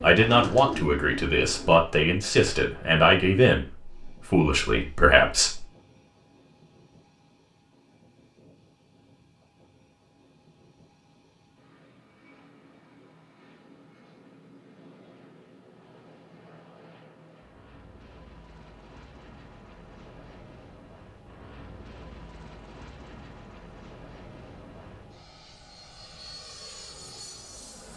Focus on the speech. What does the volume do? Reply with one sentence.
The loudness of the speech stays about the same.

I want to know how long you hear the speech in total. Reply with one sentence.
You can hear the speech for 6 seconds altogether.